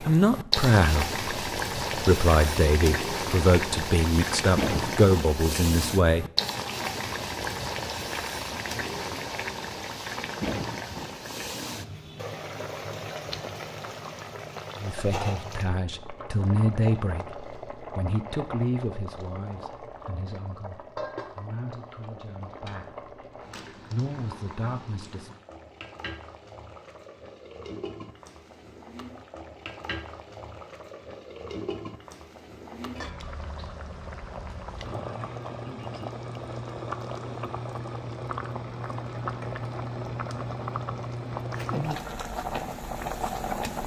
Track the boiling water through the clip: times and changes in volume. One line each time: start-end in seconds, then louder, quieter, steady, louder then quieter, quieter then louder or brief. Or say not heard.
0.0-43.8 quieter then louder.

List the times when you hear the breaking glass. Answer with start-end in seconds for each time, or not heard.
not heard.